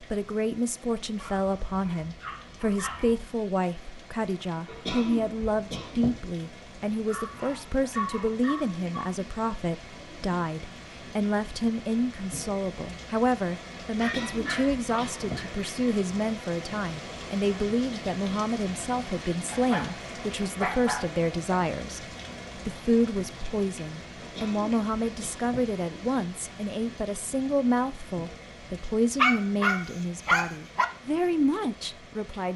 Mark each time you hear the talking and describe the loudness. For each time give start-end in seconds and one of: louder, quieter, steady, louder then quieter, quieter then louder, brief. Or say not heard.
0.0-32.5 steady.